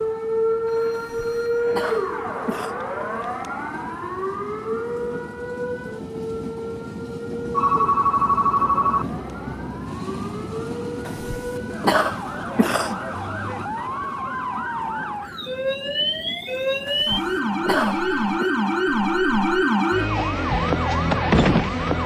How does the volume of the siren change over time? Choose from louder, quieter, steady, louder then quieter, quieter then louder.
quieter then louder.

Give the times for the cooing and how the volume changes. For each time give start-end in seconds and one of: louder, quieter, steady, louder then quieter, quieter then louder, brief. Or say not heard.
not heard.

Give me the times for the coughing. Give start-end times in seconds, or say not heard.
0.9-2.8, 11.1-13.0, 16.9-18.5.